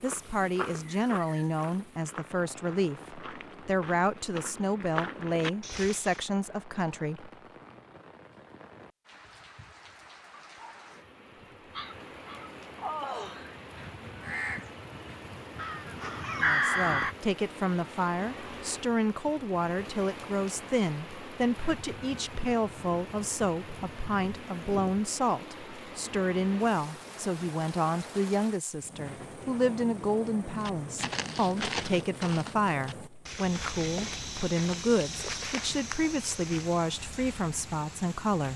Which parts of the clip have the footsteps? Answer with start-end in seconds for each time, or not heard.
0.0-6.2, 30.6-36.9.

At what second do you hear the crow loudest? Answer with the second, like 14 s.
17 s.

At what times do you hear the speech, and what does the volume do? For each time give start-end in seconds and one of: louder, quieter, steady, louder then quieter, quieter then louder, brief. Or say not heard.
0.0-7.3 steady
16.4-38.5 steady.